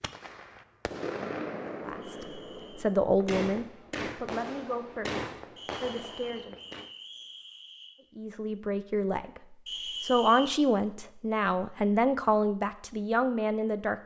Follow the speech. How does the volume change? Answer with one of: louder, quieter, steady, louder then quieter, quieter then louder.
quieter then louder.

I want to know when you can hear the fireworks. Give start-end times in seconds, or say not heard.
0.0-6.9.